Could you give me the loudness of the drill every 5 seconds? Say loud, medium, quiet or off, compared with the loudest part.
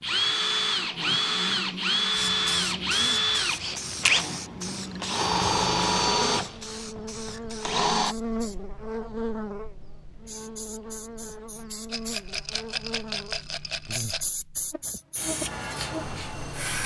loud, loud, off, off.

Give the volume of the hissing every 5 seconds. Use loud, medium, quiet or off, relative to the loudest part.
loud, medium, medium, loud.